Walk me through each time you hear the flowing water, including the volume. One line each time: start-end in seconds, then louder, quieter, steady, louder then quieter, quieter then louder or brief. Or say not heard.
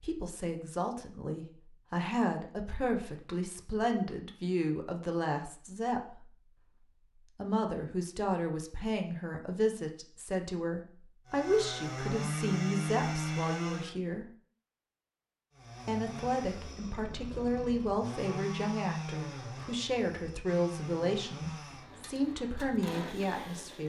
not heard.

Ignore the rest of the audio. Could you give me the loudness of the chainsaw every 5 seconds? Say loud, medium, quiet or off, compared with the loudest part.
off, off, loud, medium, medium.